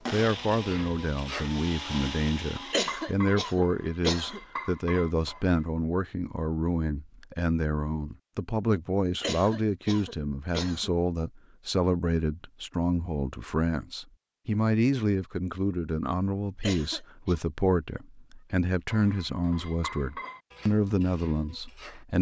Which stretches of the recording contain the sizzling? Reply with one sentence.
The sizzling can't be heard in this clip.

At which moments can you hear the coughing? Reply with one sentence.
You can hear the coughing from 2.7 to 4.4 s, from 9.2 to 10.9 s and from 16.6 to 17.4 s.